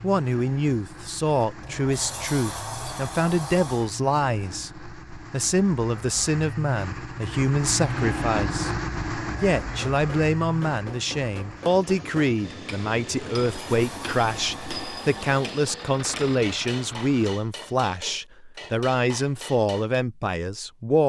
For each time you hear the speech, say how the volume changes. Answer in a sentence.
You can hear the speech from 0.0 to 21.0 s, at a steady volume.